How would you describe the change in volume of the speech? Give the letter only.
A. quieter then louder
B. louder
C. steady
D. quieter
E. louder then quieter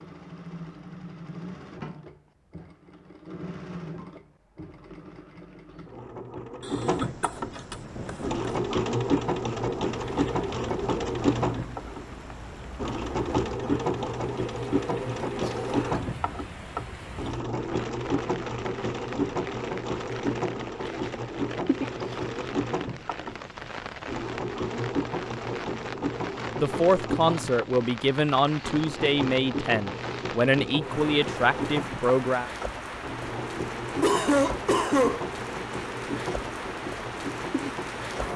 C.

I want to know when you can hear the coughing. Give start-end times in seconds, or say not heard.
6.6-8.2, 15.4-16.0, 34.0-35.2.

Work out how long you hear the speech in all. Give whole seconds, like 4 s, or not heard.
6 s.